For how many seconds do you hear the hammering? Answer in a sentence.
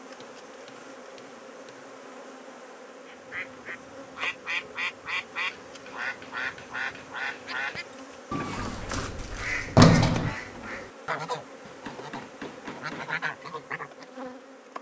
The hammering can be heard for 6 seconds in total.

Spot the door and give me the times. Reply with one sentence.
The door can be heard from 8.6 to 10.3 s.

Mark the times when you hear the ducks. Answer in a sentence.
The ducks can be heard from 3.0 to 14.1 s.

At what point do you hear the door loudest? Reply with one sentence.
The volume of the door peaks at 10 seconds.